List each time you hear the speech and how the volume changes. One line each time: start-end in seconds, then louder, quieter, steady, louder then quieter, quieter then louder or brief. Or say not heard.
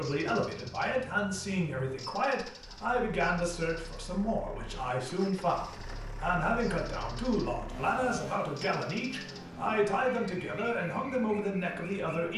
0.0-12.3 steady.